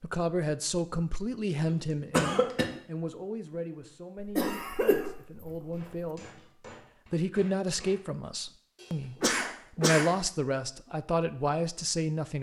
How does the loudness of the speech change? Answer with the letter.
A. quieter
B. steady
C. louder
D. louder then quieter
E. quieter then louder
E.